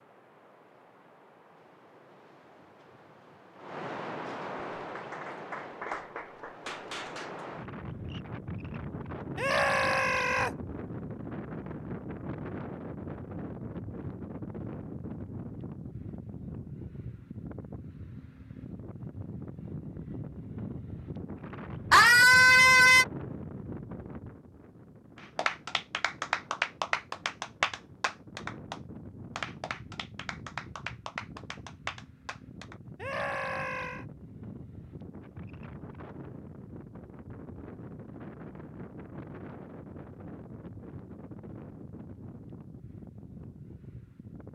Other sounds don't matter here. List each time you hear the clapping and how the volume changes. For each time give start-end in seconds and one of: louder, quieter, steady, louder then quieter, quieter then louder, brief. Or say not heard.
4.8-7.5 brief
25.1-32.8 quieter.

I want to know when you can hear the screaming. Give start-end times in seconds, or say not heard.
9.3-10.6, 21.9-23.1, 33.0-34.0.